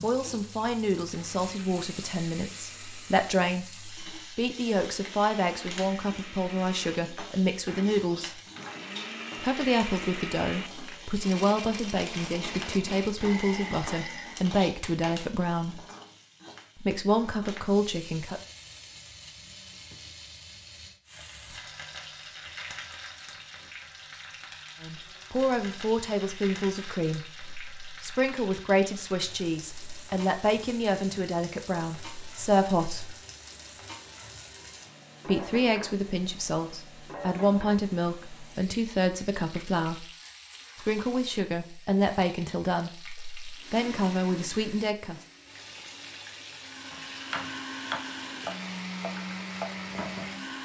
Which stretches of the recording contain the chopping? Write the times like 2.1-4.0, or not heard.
46.9-50.4.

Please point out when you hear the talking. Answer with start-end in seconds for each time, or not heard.
0.0-8.3, 9.3-15.8, 16.8-18.4, 24.8-33.1, 35.2-40.0, 40.8-45.2.